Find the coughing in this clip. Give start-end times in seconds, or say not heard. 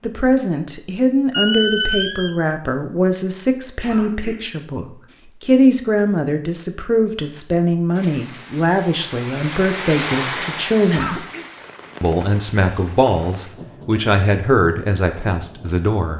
3.8-4.4, 10.8-11.4.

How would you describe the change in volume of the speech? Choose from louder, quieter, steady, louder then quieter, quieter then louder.
steady.